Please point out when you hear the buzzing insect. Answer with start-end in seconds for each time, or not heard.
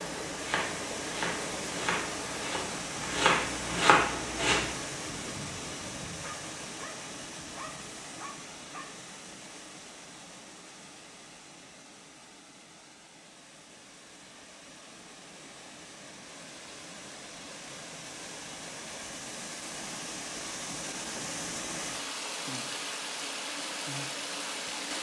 not heard.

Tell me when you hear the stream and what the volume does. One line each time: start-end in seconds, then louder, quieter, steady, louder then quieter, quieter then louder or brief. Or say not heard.
0.0-24.9 quieter then louder.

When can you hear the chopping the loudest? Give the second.
4 s.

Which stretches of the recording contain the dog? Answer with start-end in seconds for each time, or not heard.
6.2-9.0.